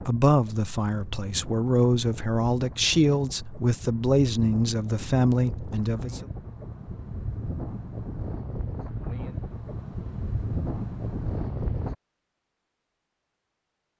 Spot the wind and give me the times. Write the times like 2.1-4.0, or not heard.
0.0-11.9.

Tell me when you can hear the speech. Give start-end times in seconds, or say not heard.
0.1-6.2.